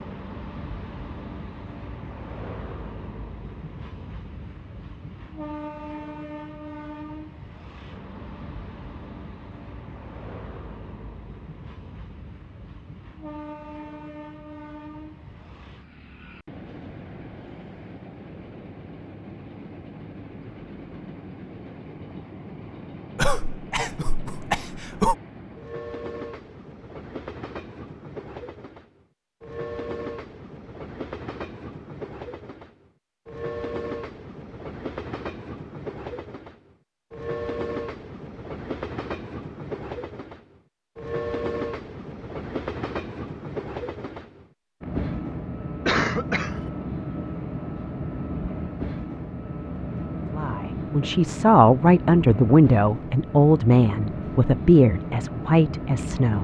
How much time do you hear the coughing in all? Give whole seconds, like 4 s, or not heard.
3 s.